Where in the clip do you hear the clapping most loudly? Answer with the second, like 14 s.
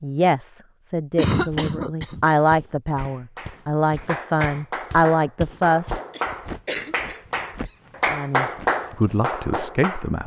9 s.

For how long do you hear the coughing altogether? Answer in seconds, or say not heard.
3 s.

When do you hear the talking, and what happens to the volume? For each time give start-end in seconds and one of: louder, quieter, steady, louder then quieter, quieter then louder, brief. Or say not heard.
0.0-6.0 louder
8.1-10.2 brief.